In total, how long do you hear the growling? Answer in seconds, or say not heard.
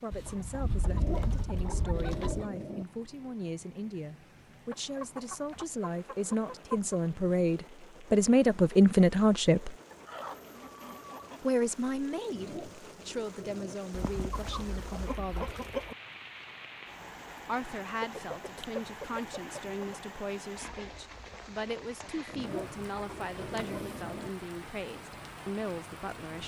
6 s.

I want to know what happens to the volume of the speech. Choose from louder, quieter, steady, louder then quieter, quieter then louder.
louder then quieter.